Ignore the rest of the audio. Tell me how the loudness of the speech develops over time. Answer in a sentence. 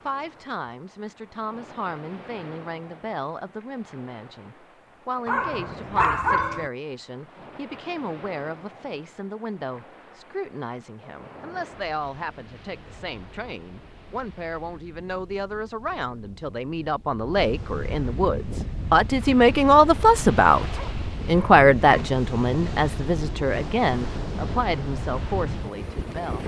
The volume of the speech goes up.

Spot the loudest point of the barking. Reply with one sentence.
The volume of the barking peaks at 6 seconds.